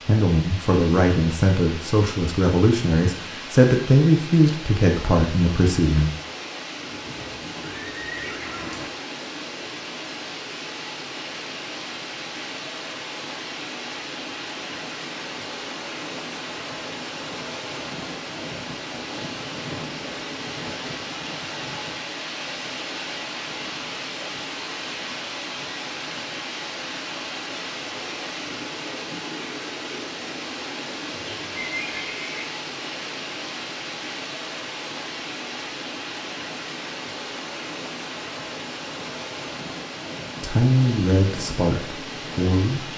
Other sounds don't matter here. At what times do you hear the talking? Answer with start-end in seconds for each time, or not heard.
0.1-6.1, 40.4-42.9.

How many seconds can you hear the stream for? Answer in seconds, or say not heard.
43 s.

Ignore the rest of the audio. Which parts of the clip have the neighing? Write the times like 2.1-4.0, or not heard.
6.8-8.8, 31.1-32.5.